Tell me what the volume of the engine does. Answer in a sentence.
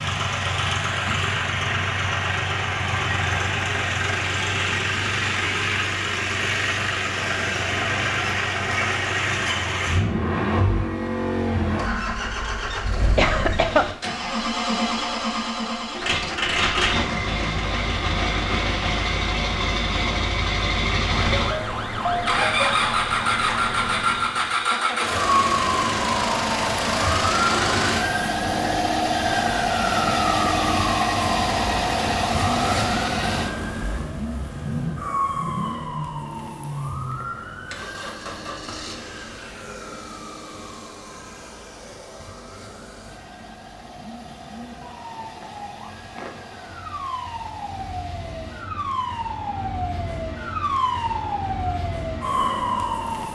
The loudness of the engine goes down.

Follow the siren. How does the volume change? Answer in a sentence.
The volume of the siren goes down, then up.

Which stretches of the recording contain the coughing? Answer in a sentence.
The coughing can be heard from 12.7 to 13.8 s.